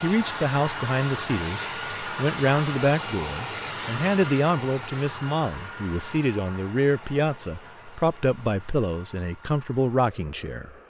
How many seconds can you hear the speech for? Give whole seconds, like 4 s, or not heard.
11 s.